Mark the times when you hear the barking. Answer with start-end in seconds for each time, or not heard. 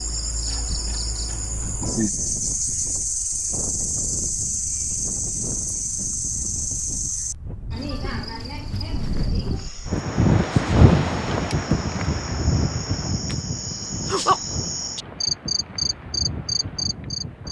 not heard.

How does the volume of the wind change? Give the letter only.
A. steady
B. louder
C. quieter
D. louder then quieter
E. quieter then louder
D.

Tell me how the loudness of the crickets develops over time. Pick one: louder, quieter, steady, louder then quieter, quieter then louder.
quieter then louder.